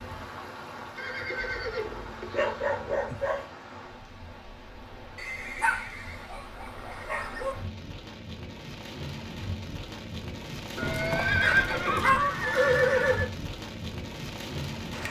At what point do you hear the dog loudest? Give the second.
12 s.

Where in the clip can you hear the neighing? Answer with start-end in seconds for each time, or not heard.
0.9-2.8, 5.2-7.6, 10.8-13.3.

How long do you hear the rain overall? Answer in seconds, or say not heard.
15 s.